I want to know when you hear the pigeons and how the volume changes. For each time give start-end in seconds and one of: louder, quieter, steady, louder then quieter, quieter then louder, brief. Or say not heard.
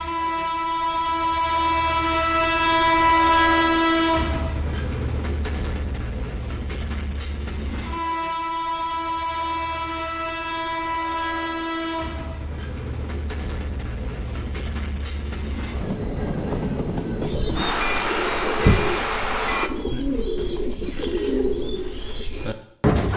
17.0-23.1 louder then quieter.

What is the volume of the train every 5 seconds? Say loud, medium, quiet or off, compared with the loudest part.
loud, medium, medium, medium, off.